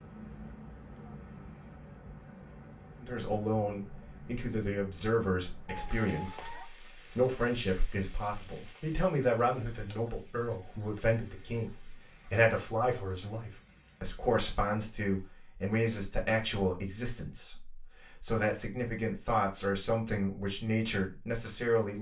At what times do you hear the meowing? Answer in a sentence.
The meowing can be heard from 5.7 to 6.7 s.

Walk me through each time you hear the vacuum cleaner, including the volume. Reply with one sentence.
You can't hear the vacuum cleaner here.